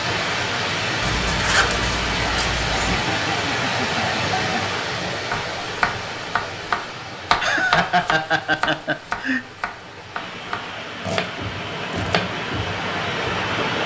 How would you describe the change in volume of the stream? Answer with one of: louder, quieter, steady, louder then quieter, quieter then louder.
quieter then louder.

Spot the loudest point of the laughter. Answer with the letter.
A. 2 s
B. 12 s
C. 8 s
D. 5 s
C.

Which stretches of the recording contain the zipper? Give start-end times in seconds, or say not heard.
1.0-3.0.